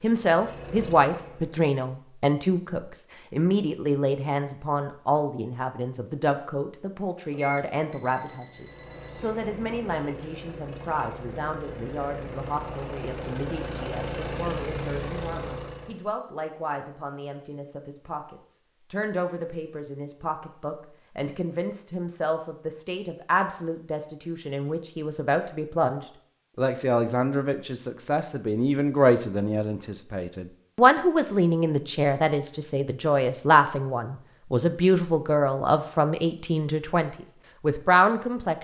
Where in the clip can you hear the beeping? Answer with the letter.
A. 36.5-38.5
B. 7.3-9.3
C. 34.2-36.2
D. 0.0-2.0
B.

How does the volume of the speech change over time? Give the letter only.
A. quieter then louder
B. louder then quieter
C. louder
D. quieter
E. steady
A.